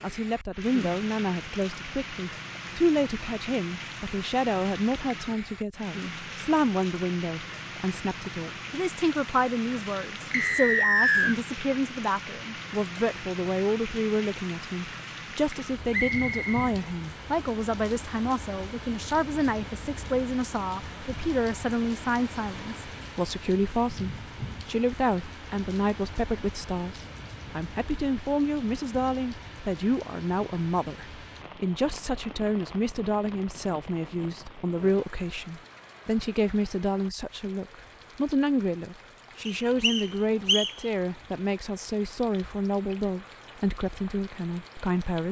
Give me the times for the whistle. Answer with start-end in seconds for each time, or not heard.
10.3-11.3, 15.9-16.8, 39.5-40.7.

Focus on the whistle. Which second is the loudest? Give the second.
11 s.